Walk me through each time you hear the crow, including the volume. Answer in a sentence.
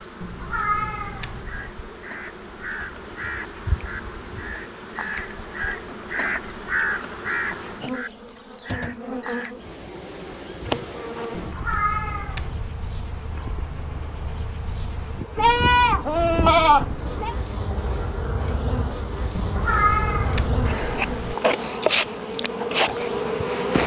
You can hear the crow from 1.4 to 9.6 s, getting louder then quieter.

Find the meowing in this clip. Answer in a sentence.
You can hear the meowing from 0.2 to 1.8 s, from 11.3 to 12.8 s and from 19.4 to 21.4 s.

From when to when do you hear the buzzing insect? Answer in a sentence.
You can hear the buzzing insect from 0.0 to 23.8 s.